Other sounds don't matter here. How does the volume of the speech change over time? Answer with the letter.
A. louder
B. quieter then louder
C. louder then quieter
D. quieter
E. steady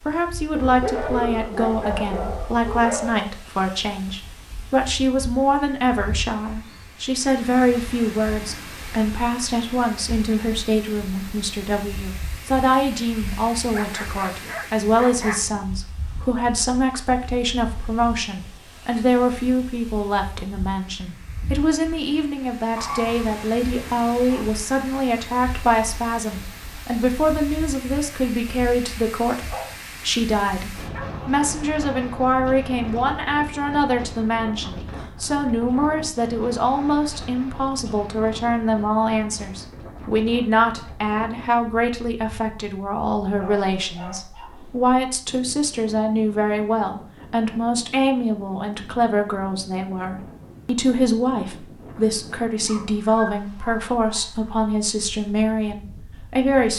E.